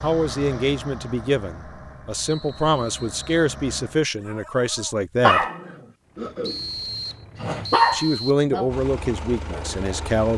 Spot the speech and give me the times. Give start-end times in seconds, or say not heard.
0.0-5.5, 7.9-10.3.